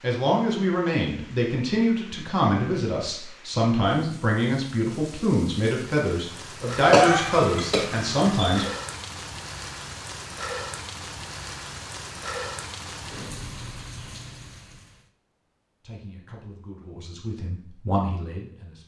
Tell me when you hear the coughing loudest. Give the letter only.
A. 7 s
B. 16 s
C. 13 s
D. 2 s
A.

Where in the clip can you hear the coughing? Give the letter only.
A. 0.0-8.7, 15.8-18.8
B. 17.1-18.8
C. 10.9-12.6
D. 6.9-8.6
D.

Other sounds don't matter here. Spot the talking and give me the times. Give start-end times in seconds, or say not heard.
0.0-8.7, 15.8-18.8.